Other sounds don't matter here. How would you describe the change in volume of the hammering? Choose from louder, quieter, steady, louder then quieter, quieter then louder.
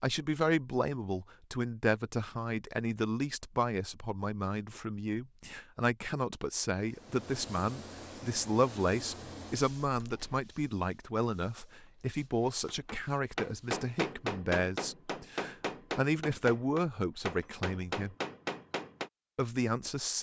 steady.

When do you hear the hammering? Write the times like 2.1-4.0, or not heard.
12.7-19.1.